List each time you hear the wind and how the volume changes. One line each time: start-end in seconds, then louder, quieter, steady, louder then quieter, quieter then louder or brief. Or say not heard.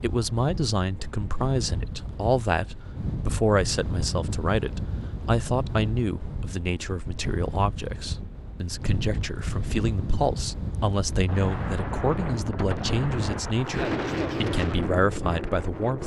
0.0-16.0 louder.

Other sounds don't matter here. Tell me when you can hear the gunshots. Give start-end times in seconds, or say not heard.
11.2-14.2.